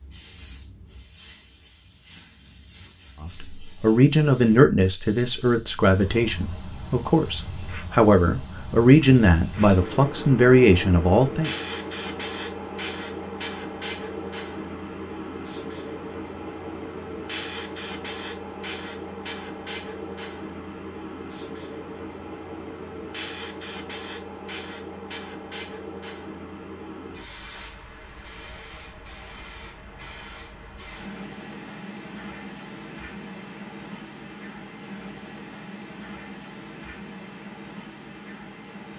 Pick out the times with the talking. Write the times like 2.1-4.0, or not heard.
3.2-11.5.